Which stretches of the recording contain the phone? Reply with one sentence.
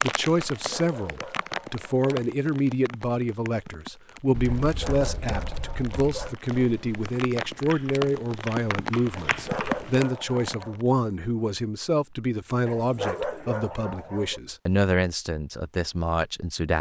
The phone can't be heard in this clip.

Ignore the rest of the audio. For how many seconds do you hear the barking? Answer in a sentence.
You can hear the barking for 7 seconds altogether.